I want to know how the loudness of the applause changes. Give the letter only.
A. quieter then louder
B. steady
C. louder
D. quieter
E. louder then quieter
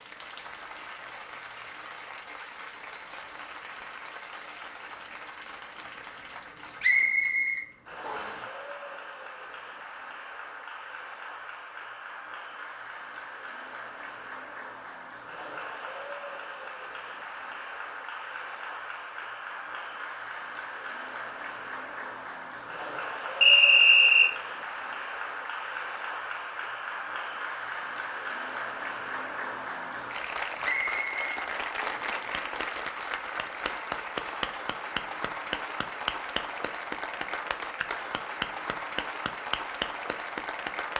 C.